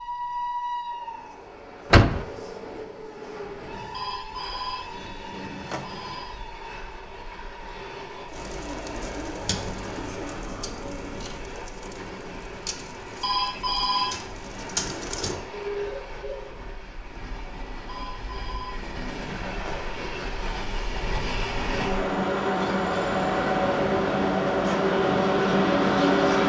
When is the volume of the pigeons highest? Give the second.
15 s.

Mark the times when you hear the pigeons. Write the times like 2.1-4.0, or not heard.
8.3-16.4.